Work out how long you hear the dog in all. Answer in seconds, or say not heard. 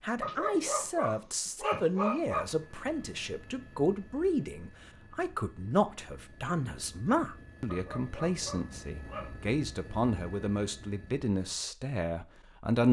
4 s.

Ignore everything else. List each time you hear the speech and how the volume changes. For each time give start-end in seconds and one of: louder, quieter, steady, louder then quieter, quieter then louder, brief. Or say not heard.
0.0-12.8 steady.